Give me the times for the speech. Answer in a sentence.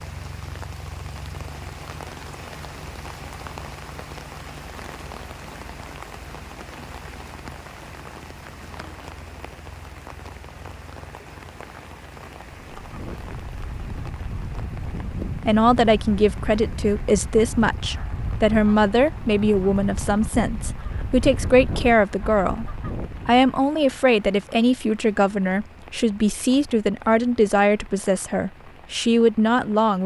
You can hear the speech from 15.4 to 22.6 s and from 23.2 to 30.0 s.